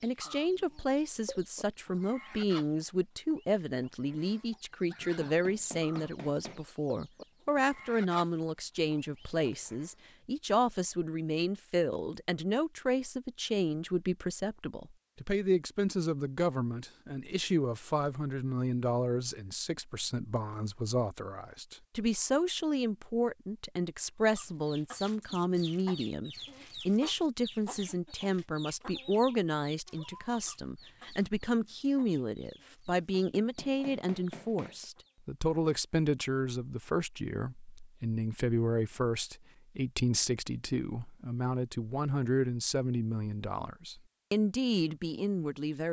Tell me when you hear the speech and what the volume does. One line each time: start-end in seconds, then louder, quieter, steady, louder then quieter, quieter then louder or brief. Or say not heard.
0.0-45.8 steady.